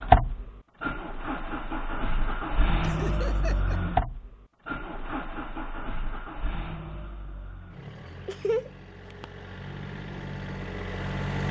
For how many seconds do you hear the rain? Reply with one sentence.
You can't hear the rain here.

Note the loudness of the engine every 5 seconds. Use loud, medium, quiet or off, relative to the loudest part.
loud, quiet, medium.